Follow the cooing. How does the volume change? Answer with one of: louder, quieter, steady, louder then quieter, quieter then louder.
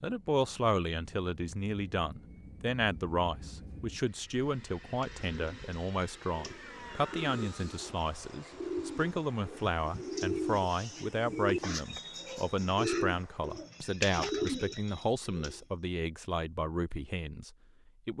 louder.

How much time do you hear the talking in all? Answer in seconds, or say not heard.
18 s.